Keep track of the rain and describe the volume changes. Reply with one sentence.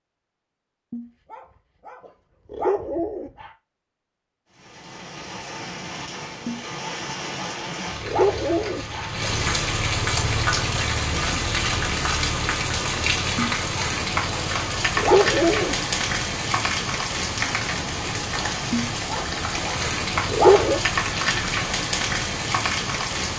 The volume of the rain goes up.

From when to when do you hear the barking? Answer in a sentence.
You can hear the barking from 0.9 to 3.5 s, from 6.5 to 9.2 s, from 13.3 to 15.8 s and from 18.7 to 20.8 s.